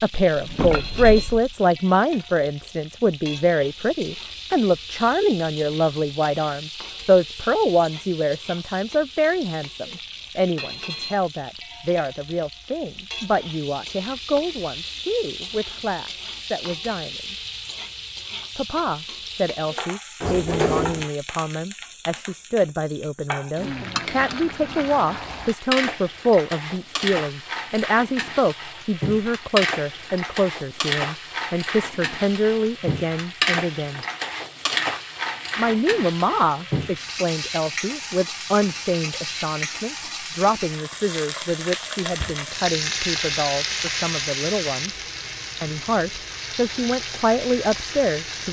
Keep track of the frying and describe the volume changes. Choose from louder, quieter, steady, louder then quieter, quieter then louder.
louder.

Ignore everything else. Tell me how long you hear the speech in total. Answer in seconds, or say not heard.
45 s.